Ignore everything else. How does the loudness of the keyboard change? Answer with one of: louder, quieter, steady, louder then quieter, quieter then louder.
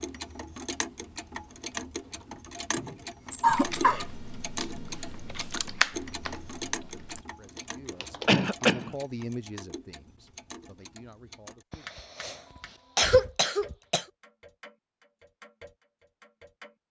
louder then quieter.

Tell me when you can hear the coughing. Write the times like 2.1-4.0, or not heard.
2.8-4.0, 8.2-8.9, 11.7-12.3, 12.9-14.1.